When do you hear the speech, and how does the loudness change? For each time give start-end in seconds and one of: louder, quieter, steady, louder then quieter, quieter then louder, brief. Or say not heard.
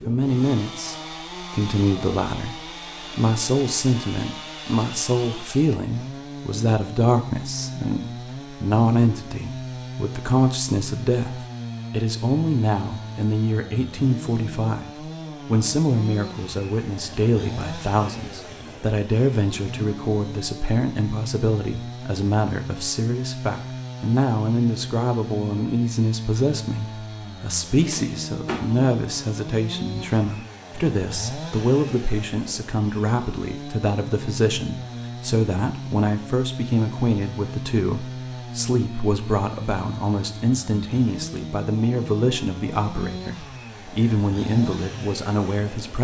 0.1-45.9 steady.